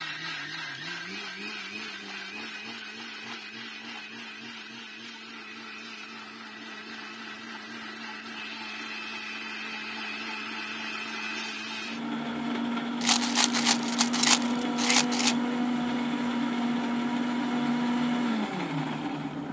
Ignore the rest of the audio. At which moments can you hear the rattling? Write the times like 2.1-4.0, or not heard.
2.0-4.2, 13.0-15.3.